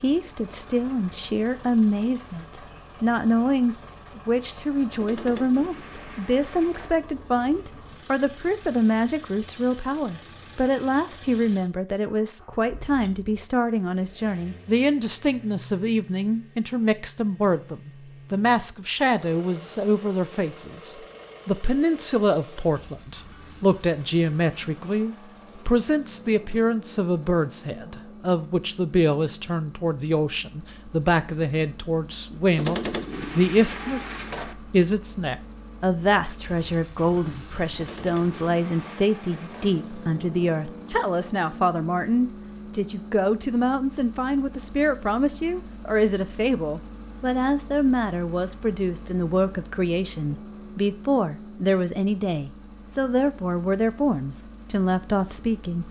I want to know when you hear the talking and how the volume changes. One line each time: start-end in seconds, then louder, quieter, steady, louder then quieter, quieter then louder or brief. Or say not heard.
0.0-55.8 steady.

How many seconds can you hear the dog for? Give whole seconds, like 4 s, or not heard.
not heard.